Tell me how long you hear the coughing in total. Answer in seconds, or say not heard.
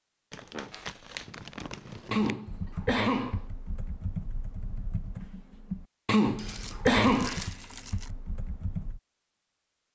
3 s.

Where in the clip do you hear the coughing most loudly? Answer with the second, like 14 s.
7 s.